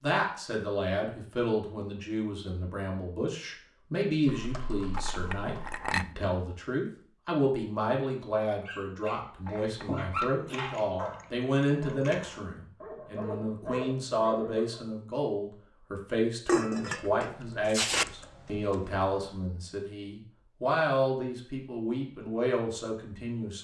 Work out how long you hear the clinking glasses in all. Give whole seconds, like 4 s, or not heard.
4 s.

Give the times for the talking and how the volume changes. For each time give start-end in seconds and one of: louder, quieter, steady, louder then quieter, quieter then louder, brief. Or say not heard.
0.0-23.5 steady.